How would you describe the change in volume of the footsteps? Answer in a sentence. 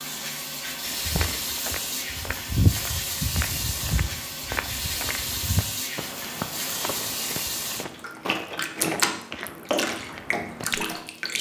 The loudness of the footsteps goes down.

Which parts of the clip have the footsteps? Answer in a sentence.
You can hear the footsteps from 0.8 to 10.9 s.